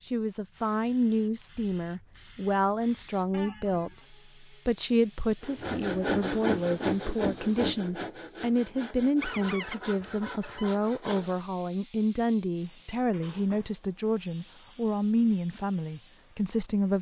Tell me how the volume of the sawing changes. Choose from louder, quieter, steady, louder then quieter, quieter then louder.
quieter.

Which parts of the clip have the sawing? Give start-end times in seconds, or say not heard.
5.4-11.4.